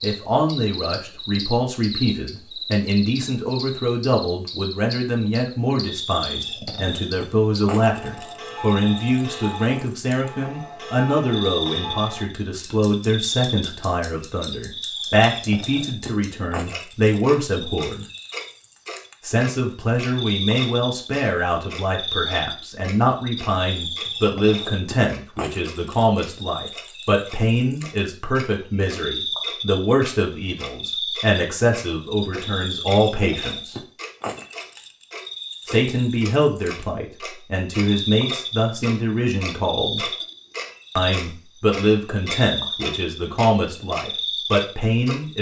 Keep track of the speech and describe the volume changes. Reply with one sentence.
The loudness of the speech stays about the same.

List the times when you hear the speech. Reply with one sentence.
The speech can be heard from 0.0 to 18.1 s, from 19.2 to 33.8 s, from 35.6 to 40.1 s and from 41.0 to 45.3 s.